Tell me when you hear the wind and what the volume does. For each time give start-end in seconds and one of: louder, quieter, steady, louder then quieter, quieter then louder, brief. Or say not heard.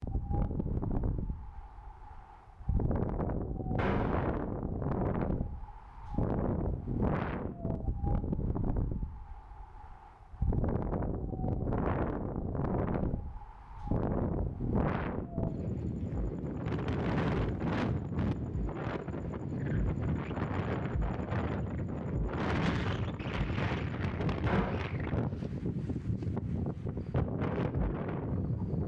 0.0-28.8 steady.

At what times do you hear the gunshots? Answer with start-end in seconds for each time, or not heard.
3.8-4.2, 24.4-24.9.